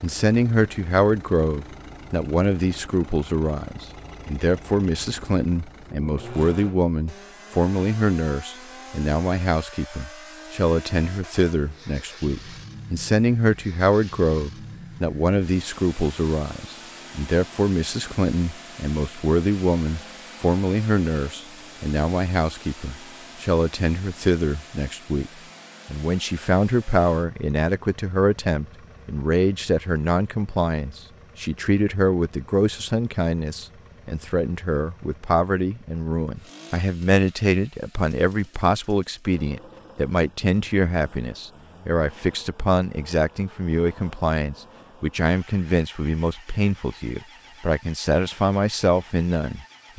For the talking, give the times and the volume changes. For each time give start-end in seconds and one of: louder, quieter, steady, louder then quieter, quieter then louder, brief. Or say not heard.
0.0-49.9 steady.